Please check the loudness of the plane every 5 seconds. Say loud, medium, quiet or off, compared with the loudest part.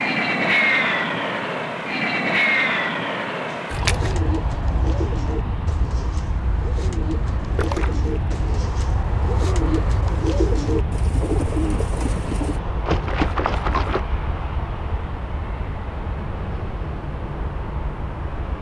loud, medium, medium, medium.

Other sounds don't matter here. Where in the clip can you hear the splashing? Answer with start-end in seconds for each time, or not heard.
3.7-4.2, 7.4-8.1, 12.8-14.0.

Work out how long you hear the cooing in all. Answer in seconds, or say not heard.
9 s.